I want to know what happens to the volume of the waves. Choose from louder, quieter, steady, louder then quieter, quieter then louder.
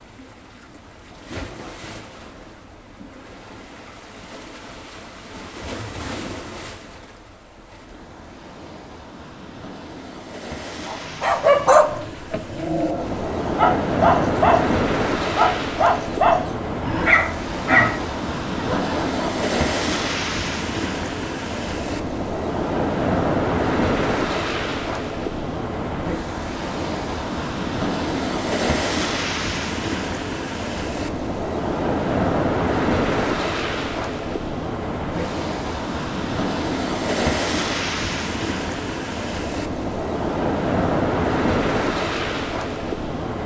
louder.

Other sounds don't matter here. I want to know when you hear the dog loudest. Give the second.
12 s.